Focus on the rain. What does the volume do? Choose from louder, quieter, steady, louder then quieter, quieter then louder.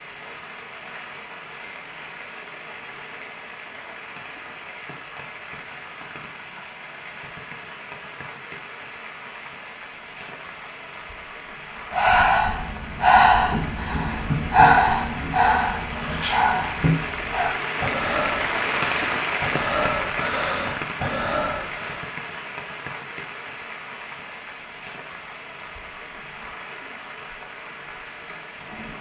louder then quieter.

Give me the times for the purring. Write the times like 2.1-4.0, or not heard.
not heard.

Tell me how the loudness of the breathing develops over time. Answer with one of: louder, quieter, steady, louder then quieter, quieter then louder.
quieter.